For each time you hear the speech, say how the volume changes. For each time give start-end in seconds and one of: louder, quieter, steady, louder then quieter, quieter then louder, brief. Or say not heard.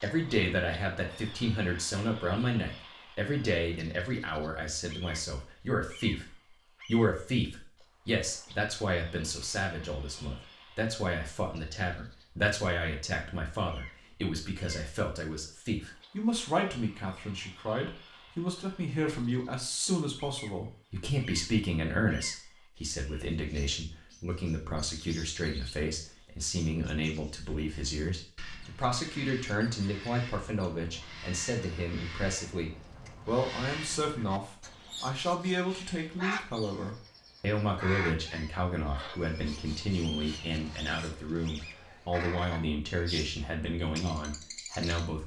0.0-45.2 steady.